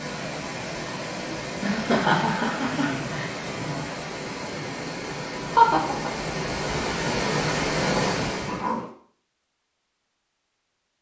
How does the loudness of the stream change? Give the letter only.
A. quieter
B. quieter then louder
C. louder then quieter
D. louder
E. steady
D.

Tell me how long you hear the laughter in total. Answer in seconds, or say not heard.
3 s.